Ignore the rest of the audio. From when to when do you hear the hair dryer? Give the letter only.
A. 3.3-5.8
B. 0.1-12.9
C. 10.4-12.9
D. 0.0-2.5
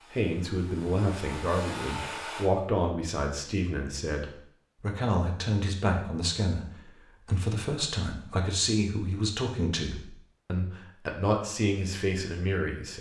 D.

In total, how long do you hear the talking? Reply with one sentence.
The talking can be heard for 13 seconds in total.